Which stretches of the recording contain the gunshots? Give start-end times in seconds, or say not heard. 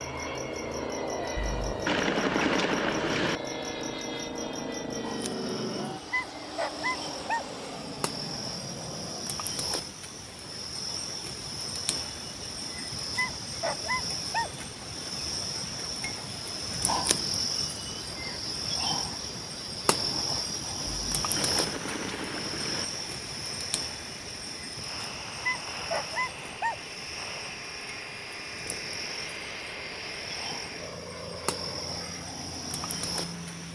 1.4-3.4, 20.9-22.9.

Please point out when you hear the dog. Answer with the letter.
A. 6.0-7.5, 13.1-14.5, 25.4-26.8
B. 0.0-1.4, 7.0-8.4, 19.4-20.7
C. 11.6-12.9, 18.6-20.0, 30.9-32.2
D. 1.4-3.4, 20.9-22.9
A.